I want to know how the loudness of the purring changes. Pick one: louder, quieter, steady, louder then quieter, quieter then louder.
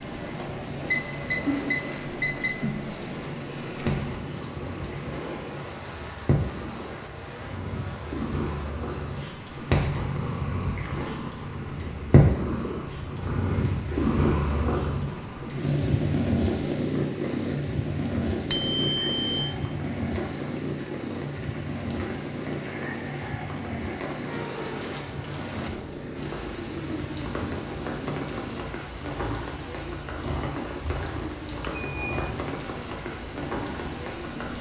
louder then quieter.